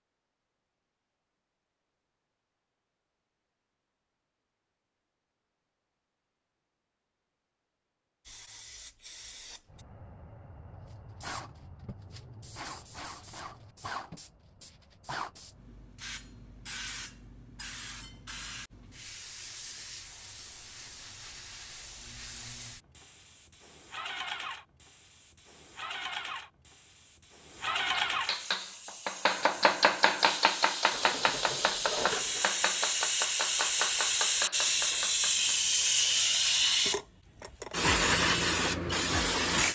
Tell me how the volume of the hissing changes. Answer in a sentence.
The volume of the hissing goes up.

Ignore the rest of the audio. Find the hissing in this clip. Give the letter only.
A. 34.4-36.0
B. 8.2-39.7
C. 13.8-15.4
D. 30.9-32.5
B.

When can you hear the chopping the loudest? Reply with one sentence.
The loudest moment of the chopping is at 30 seconds.